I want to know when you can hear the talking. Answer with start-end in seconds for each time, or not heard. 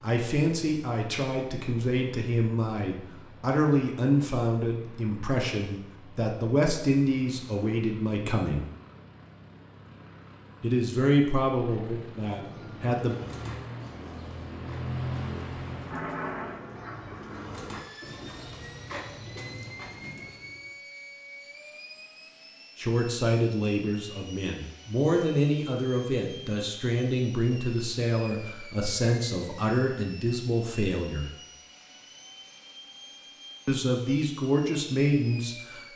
0.0-8.7, 10.6-13.2, 22.8-31.3, 33.6-35.9.